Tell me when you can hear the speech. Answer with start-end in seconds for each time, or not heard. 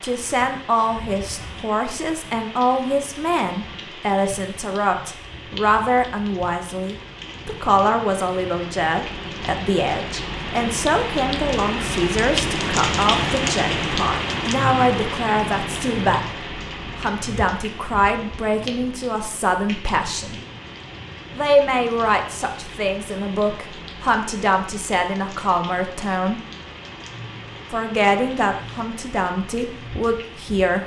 0.0-16.2, 16.9-20.4, 21.4-26.4, 27.7-30.8.